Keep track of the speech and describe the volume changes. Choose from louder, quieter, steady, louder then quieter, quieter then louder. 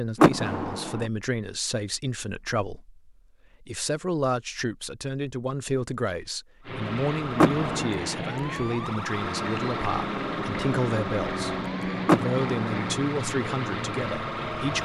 steady.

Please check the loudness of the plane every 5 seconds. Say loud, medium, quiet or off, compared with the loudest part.
off, loud, loud.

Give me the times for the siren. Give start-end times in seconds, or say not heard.
6.6-14.8.